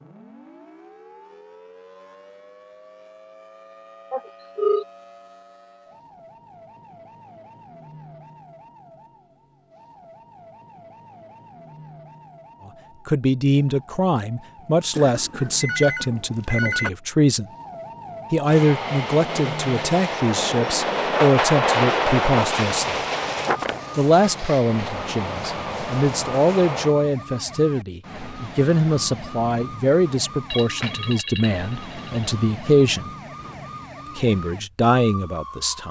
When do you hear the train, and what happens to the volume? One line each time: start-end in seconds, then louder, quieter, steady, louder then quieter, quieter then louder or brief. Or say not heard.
18.4-26.9 louder then quieter.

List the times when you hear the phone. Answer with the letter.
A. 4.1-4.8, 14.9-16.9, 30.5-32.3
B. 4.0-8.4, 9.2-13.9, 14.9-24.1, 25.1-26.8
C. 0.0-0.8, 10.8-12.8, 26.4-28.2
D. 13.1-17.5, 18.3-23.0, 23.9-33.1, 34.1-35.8
A.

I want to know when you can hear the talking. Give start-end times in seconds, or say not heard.
13.1-17.5, 18.3-23.0, 23.9-33.1, 34.1-35.8.